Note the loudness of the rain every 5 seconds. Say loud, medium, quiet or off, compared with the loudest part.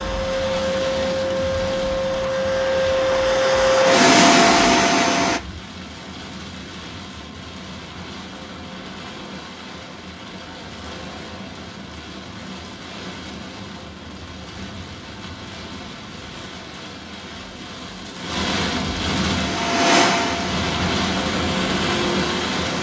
medium, quiet, quiet, medium, loud.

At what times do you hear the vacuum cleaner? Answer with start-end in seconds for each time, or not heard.
0.0-5.4, 19.2-22.7.